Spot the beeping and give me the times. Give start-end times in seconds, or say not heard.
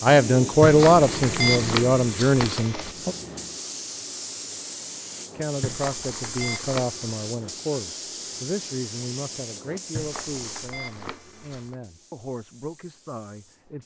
0.6-3.0, 5.6-7.2, 9.9-11.8.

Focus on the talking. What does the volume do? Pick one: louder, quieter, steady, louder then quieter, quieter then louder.
quieter.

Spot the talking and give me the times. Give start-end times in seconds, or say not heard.
0.0-3.1, 5.3-13.8.